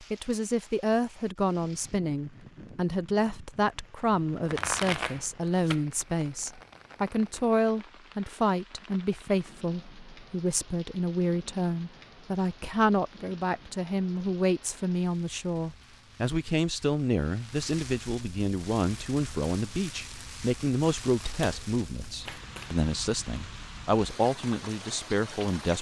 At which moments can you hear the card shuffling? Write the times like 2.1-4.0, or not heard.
4.3-5.8, 21.2-22.8.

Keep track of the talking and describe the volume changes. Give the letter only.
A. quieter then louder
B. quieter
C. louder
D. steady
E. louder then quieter
D.